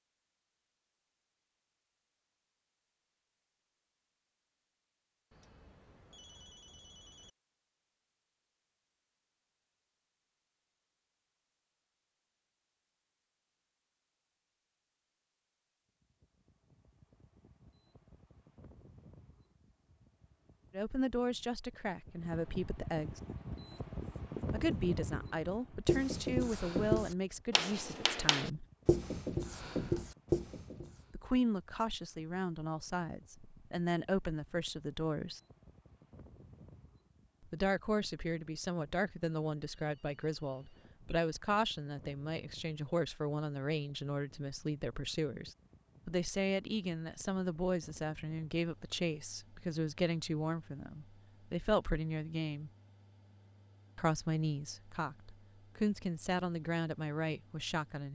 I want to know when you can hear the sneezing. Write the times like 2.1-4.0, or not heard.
not heard.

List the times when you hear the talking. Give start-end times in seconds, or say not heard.
20.7-23.2, 24.5-28.6, 31.1-35.4, 37.5-52.7, 54.0-58.1.